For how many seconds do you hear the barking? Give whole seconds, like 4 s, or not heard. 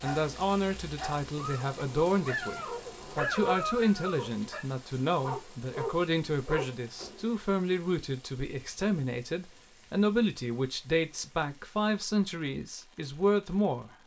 7 s.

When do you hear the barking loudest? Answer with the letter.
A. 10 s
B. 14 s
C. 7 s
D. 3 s
D.